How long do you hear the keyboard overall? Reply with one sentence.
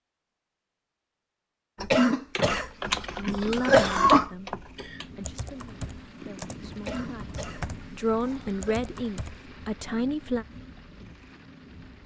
The keyboard can be heard for 8 seconds in total.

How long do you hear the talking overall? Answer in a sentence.
The talking can be heard for 7 seconds in total.